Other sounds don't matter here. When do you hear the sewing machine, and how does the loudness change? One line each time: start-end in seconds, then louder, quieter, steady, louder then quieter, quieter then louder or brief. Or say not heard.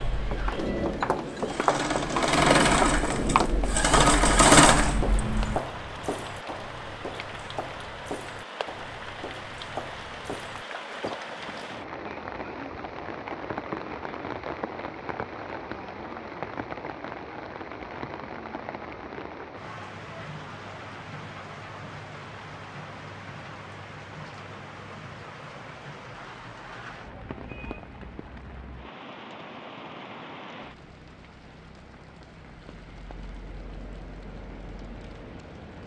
0.0-5.6 louder.